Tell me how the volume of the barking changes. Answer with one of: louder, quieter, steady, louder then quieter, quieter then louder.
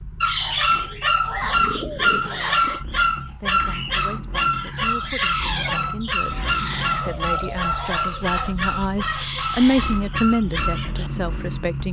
quieter.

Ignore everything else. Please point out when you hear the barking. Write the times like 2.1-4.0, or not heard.
0.2-11.1.